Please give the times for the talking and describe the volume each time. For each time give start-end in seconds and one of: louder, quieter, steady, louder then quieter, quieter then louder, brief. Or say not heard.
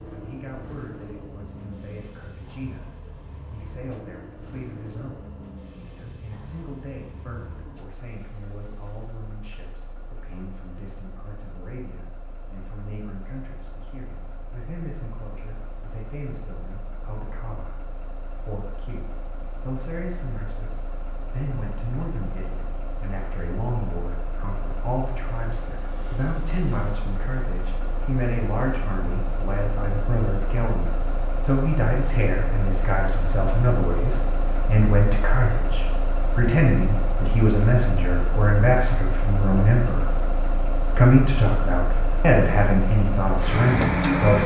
0.1-44.4 louder.